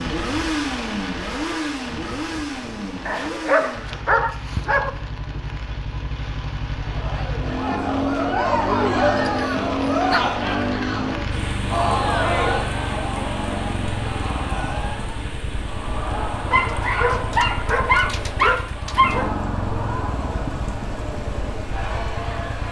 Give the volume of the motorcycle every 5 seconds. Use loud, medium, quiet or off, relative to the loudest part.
loud, loud, loud, medium, medium.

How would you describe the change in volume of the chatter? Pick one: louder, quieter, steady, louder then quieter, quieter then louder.
quieter.